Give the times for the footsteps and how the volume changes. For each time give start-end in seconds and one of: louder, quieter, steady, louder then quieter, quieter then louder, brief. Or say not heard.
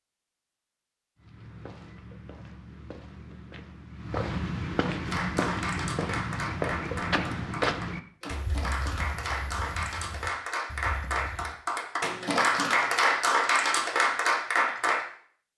1.1-11.6 louder then quieter.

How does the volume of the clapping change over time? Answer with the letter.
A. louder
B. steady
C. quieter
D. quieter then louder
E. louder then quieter
A.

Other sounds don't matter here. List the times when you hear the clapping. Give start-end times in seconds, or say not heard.
5.0-15.1.